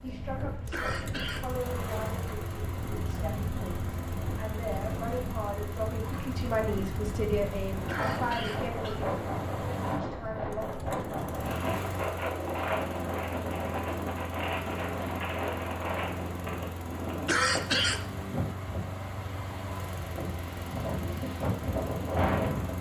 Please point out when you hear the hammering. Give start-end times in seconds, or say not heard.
not heard.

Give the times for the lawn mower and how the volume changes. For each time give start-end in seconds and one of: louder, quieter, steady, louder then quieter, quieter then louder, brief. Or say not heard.
0.0-22.7 steady.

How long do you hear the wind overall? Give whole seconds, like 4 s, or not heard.
23 s.